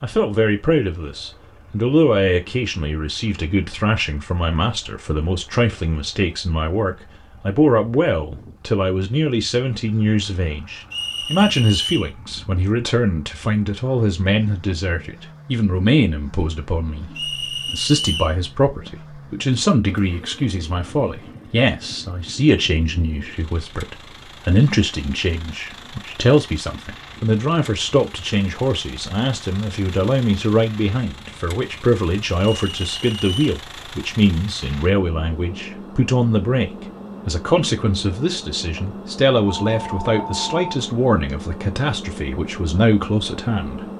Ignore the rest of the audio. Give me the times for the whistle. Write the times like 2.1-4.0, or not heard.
10.9-12.1, 17.1-18.4, 32.5-33.5.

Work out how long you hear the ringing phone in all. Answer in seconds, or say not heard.
2 s.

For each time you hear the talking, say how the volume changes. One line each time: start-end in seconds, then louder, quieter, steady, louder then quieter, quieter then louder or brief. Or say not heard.
0.0-43.9 steady.